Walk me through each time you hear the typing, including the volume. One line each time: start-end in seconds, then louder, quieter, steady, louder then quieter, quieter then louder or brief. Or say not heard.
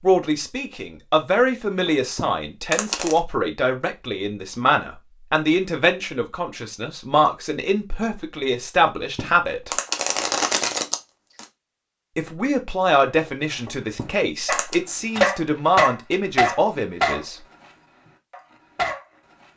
not heard.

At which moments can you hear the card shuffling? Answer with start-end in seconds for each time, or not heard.
1.9-3.2, 8.8-11.4, 13.7-14.8.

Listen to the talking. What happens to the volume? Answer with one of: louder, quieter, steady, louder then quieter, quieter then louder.
steady.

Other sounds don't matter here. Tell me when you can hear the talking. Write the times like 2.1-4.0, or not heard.
0.0-9.7, 12.2-17.4.